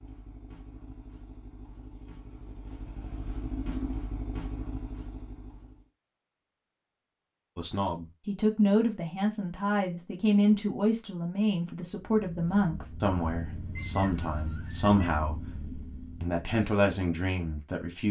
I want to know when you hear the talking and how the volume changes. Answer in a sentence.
You can hear the talking from 7.5 to 15.4 s, at a steady volume; and briefly from 16.2 to 18.0 s.